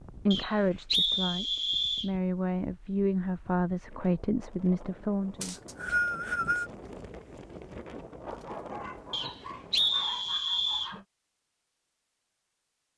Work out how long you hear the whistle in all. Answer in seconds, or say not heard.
5 s.